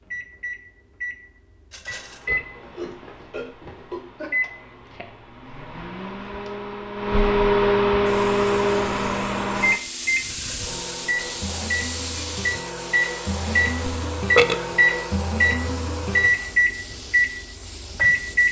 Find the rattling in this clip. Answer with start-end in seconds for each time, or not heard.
1.7-2.3, 10.2-10.8.